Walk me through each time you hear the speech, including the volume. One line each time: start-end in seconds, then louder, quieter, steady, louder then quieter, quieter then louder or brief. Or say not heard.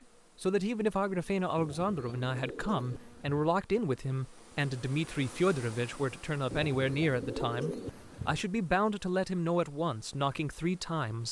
0.4-11.2 steady.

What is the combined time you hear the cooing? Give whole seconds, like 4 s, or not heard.
4 s.